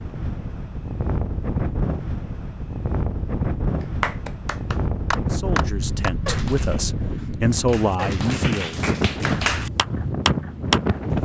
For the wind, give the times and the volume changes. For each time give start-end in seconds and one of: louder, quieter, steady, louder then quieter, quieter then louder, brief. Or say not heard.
0.0-11.2 steady.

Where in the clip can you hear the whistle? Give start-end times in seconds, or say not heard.
not heard.